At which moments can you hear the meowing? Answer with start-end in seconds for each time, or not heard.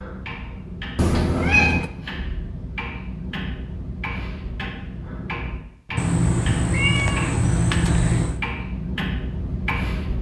0.9-1.9, 6.0-8.4.